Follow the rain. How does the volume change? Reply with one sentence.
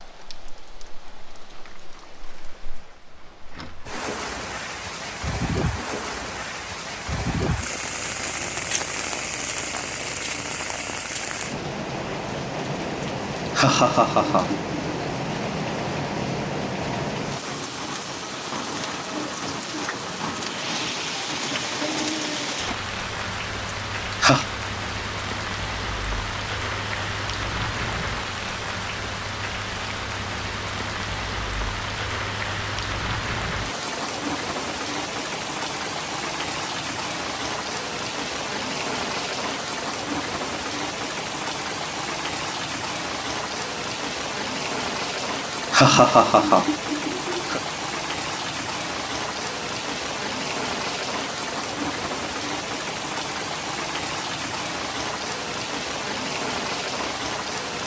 The volume of the rain stays about the same.